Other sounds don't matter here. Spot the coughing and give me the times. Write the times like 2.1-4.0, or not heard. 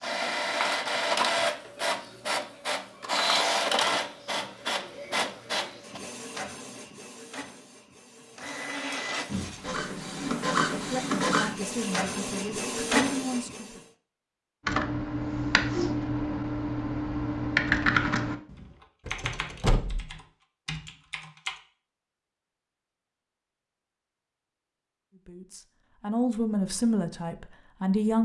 not heard.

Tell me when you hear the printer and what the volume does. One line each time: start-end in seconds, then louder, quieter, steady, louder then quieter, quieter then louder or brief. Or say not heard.
0.0-13.8 quieter then louder.